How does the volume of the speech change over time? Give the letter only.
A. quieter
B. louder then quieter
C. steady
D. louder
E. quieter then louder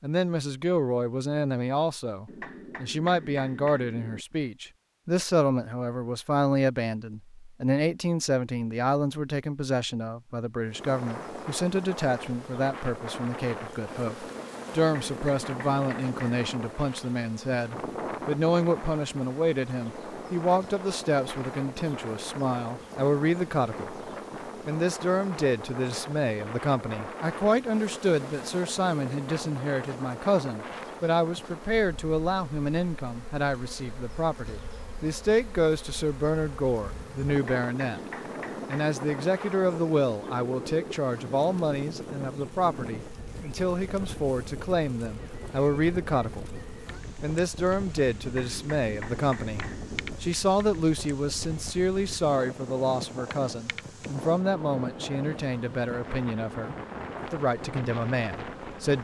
C.